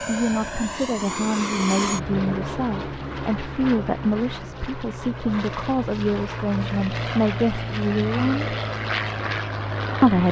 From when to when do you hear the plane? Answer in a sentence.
You can hear the plane from 0.0 to 10.2 s.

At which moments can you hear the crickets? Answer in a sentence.
The crickets can't be heard in this clip.